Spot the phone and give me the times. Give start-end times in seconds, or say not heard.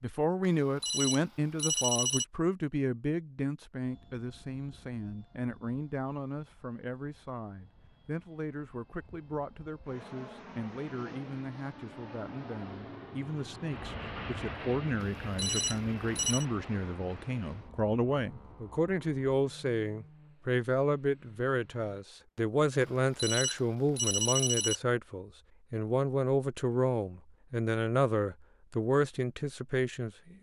0.6-2.2, 15.0-16.4, 22.8-24.8.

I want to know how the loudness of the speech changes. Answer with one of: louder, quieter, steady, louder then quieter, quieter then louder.
quieter then louder.